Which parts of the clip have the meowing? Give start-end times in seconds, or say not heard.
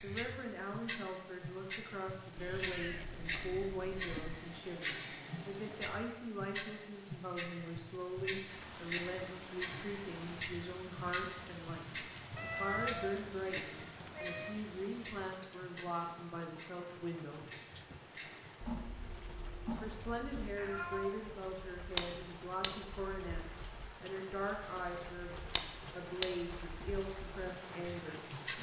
2.4-4.4, 12.3-14.6, 20.6-21.1.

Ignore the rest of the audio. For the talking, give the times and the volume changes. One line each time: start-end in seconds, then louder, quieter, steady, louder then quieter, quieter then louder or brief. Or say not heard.
0.0-17.5 steady
19.8-28.2 steady.